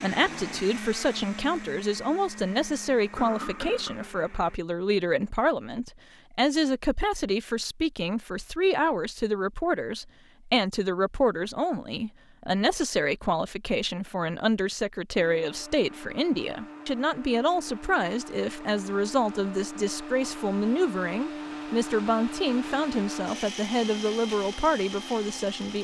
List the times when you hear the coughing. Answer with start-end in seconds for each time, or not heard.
3.1-4.1.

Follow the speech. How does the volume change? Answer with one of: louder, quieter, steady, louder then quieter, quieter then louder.
steady.